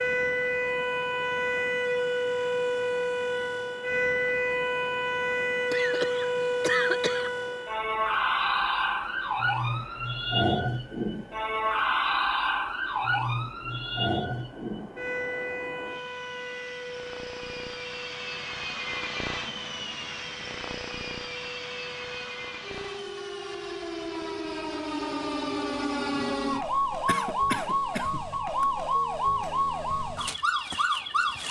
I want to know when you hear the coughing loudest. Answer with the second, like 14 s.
7 s.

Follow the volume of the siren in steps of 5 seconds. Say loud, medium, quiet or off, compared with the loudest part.
loud, loud, loud, medium, medium, loud, loud.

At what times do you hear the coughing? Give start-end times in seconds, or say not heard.
5.7-7.3, 27.1-28.6.